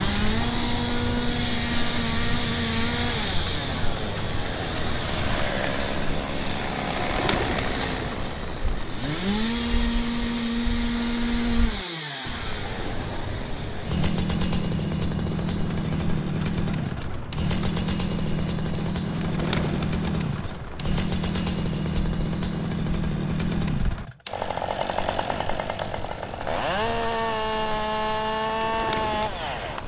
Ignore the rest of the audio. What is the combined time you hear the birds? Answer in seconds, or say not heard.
30 s.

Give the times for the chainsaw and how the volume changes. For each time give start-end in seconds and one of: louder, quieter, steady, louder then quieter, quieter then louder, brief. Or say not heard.
0.0-29.8 steady.